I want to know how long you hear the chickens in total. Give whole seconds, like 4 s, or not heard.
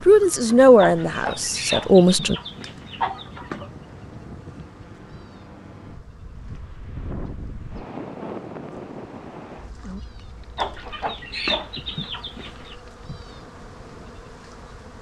5 s.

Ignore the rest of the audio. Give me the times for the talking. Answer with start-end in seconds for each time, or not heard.
0.1-2.4.